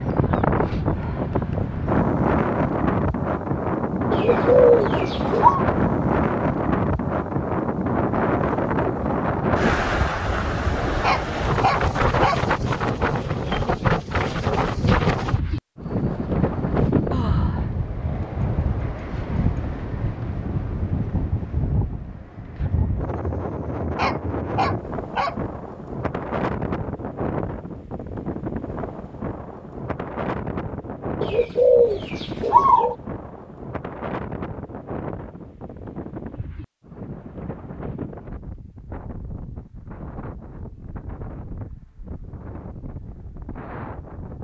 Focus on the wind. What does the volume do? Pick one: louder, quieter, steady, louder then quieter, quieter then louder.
quieter.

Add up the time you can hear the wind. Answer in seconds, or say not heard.
44 s.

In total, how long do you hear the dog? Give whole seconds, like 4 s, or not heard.
3 s.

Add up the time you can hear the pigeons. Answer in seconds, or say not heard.
3 s.